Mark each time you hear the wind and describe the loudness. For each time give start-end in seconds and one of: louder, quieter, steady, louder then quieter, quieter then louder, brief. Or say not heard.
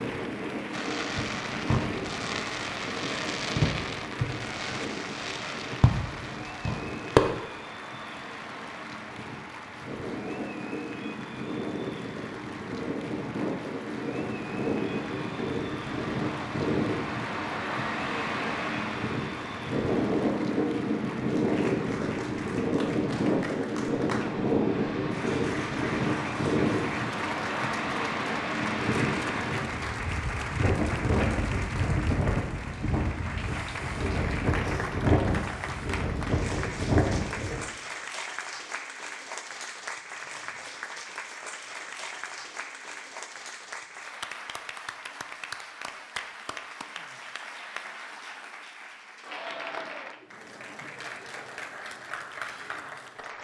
0.0-37.6 louder.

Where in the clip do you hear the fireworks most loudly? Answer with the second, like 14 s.
7 s.